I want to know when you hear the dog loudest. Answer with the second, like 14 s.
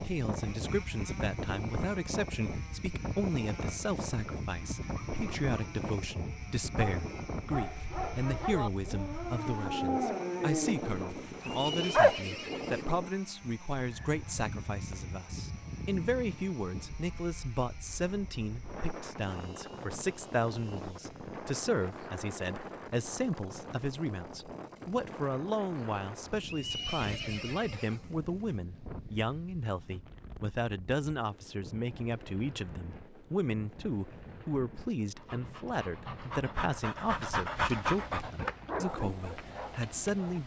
12 s.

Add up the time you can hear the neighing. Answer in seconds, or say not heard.
3 s.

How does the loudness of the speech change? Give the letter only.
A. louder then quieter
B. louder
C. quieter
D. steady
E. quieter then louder
D.